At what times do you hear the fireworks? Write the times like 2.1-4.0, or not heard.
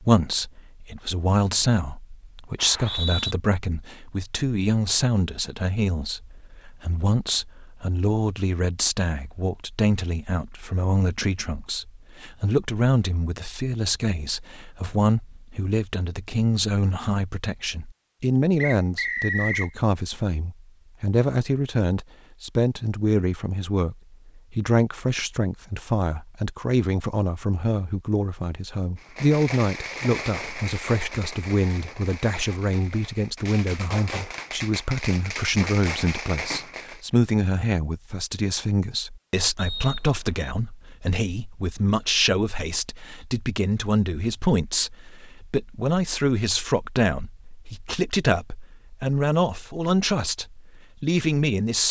28.9-37.0.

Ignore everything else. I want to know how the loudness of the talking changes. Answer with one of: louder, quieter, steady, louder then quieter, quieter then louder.
steady.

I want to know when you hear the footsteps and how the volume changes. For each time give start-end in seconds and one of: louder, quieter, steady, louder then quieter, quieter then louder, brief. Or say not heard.
not heard.